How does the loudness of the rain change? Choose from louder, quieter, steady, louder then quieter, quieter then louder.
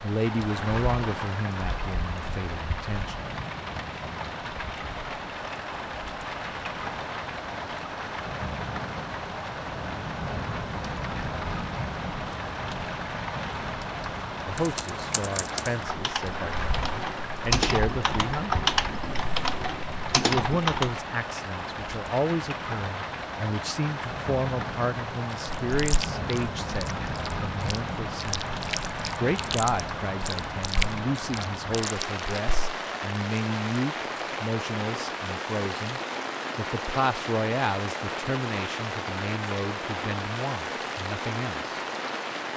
steady.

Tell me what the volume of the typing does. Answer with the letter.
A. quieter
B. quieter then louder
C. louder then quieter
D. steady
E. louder
E.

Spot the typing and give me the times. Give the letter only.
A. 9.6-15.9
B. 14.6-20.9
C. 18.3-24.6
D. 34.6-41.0
B.